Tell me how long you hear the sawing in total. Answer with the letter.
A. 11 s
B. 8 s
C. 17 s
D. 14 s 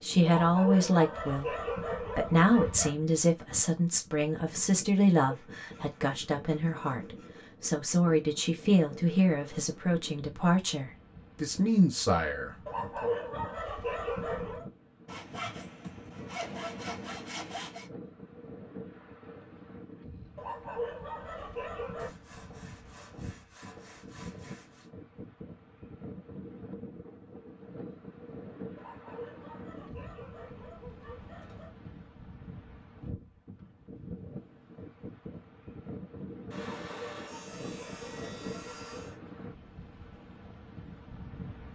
A.